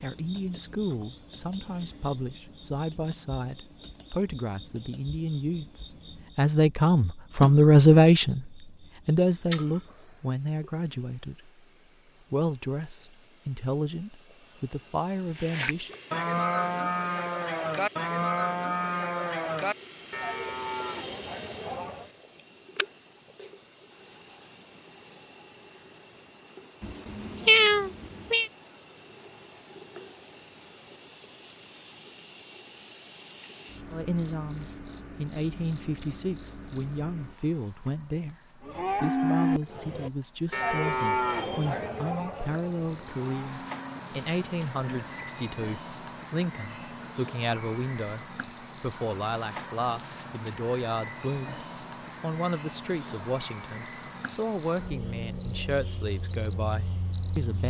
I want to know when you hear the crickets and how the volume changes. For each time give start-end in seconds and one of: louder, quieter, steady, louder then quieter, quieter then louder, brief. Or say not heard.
0.0-57.6 louder.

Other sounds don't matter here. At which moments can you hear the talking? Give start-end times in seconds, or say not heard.
0.0-11.6, 12.3-15.9, 33.9-57.6.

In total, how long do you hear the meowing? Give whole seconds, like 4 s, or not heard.
2 s.